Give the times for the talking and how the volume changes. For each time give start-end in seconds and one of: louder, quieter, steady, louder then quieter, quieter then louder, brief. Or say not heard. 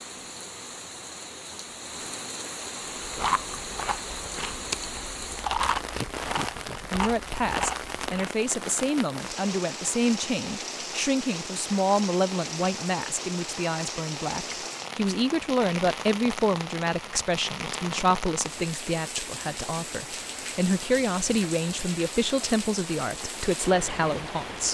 6.9-24.6 steady.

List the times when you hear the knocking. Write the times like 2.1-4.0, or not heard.
not heard.